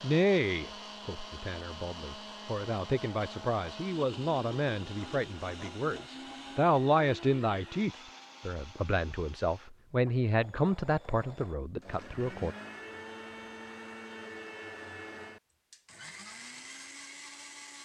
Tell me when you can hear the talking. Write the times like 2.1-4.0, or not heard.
0.0-12.6.